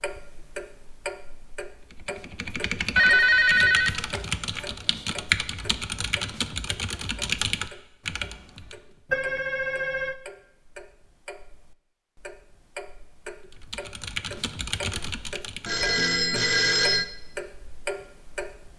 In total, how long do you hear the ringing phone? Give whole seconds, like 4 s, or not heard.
4 s.